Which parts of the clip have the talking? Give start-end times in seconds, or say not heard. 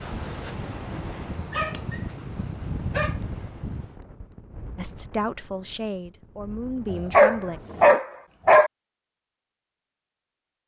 4.8-7.6.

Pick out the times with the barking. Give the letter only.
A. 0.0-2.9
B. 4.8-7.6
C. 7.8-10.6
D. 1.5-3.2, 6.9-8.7
D.